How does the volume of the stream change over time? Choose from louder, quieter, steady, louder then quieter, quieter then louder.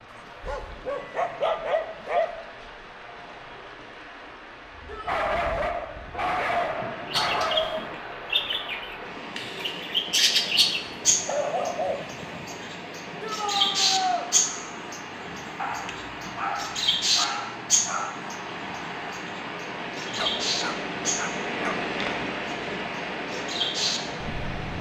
louder.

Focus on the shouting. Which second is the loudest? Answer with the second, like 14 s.
14 s.